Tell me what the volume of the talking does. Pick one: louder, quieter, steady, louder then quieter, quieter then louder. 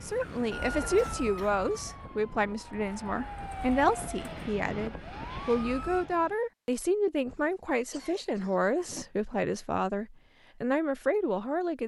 steady.